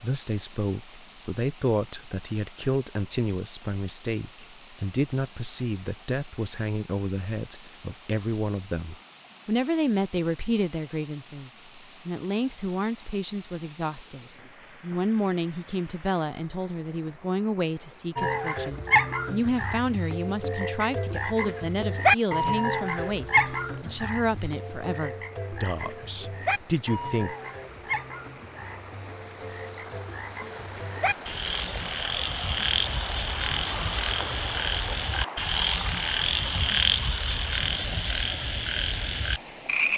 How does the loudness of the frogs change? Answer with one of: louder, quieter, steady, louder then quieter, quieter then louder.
quieter then louder.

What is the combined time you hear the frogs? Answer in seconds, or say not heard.
22 s.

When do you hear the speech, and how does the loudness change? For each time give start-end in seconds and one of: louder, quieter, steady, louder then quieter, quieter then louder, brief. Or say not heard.
0.0-27.4 steady.